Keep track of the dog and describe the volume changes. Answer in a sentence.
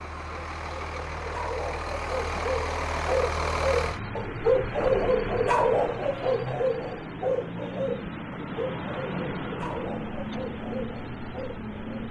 The volume of the dog goes up, then down.